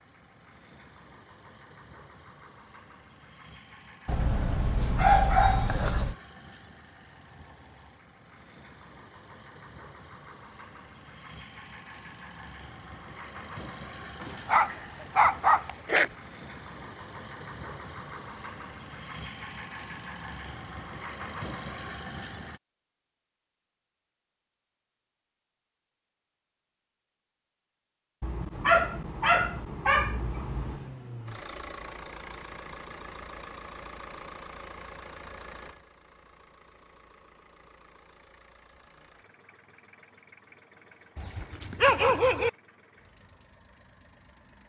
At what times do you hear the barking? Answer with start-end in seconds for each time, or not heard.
4.0-6.2, 14.2-16.1, 28.2-30.9, 41.1-42.5.